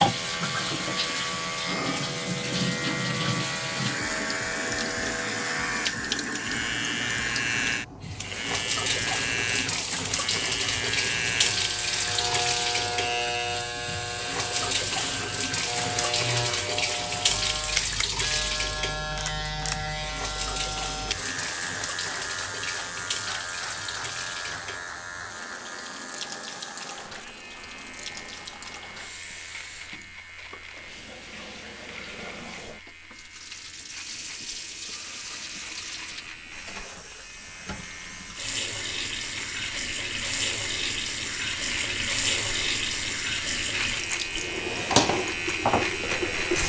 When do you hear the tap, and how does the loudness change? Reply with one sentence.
The tap can be heard from 0.0 to 46.6 s, getting quieter then louder.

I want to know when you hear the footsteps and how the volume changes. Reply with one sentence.
You can't hear the footsteps here.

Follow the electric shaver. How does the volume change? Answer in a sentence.
The volume of the electric shaver goes down, then up.